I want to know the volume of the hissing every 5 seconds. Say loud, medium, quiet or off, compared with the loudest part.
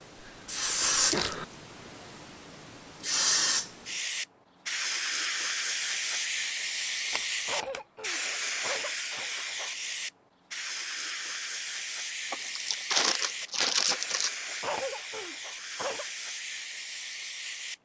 loud, loud, medium, medium.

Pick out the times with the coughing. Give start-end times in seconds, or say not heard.
0.2-1.4, 7.5-9.3, 14.6-16.1.